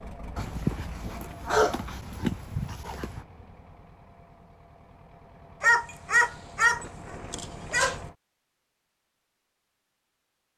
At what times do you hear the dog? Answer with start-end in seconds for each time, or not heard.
0.3-3.2, 5.6-8.0.